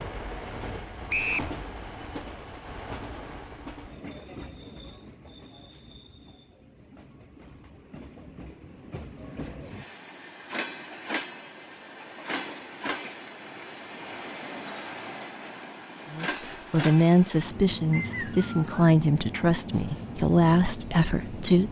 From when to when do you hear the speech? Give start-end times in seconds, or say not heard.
16.1-21.6.